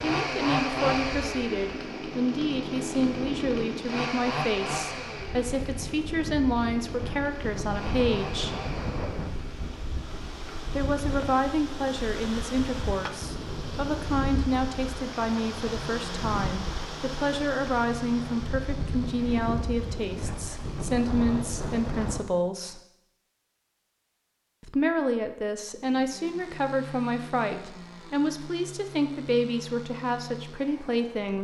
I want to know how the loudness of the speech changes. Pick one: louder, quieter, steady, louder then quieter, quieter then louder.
steady.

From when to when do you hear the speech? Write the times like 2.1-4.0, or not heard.
0.0-8.6, 10.8-22.8, 24.6-31.3.